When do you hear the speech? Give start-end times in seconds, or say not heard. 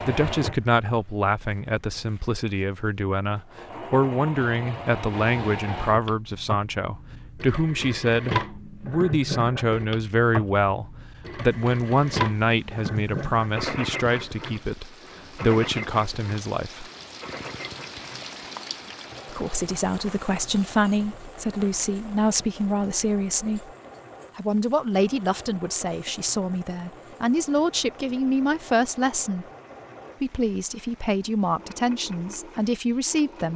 0.0-16.9, 19.3-23.6, 24.4-29.4, 30.2-33.5.